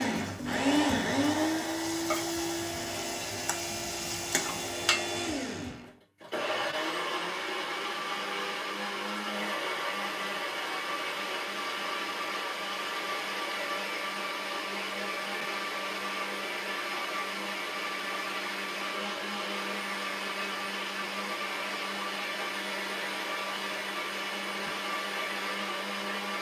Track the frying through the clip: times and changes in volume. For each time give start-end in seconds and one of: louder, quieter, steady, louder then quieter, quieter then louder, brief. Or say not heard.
0.0-5.2 louder.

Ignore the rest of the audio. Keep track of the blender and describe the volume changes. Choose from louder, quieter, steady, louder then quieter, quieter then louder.
steady.